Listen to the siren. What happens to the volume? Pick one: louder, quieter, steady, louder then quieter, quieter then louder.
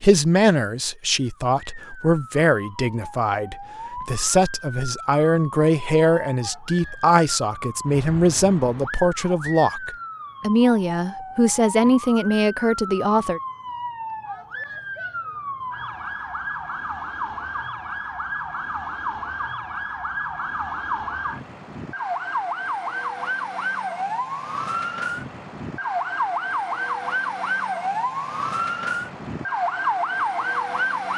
louder.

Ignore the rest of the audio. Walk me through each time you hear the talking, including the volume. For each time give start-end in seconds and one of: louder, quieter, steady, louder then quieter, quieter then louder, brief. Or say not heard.
0.0-13.4 steady.